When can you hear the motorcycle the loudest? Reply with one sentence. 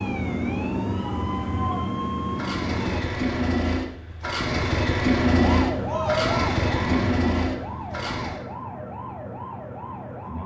The volume of the motorcycle peaks at 5 seconds.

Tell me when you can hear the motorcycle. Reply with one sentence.
The motorcycle can be heard from 0.0 to 8.4 s.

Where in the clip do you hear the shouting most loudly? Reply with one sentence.
The loudest moment of the shouting is at 6 seconds.